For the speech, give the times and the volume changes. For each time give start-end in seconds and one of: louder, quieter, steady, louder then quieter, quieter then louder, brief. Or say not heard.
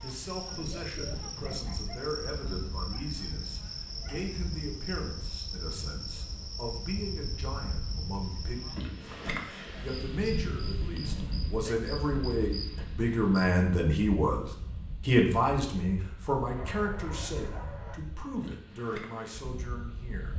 0.0-20.3 louder then quieter.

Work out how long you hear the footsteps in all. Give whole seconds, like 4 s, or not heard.
not heard.